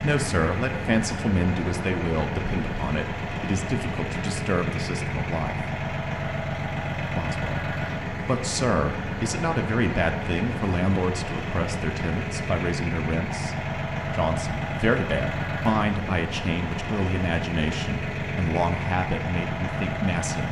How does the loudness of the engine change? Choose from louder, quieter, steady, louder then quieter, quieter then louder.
steady.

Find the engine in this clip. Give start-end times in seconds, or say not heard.
0.0-20.4.